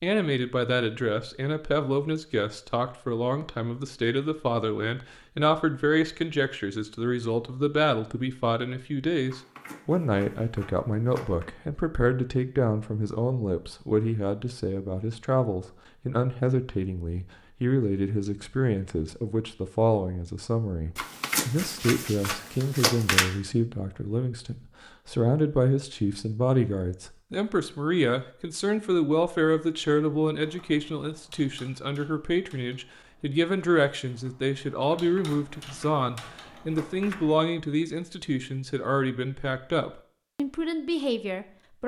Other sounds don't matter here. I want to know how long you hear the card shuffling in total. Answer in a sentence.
You can hear the card shuffling for 7 seconds altogether.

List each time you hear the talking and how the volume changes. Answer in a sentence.
You can hear the talking from 0.0 to 41.8 s, at a steady volume.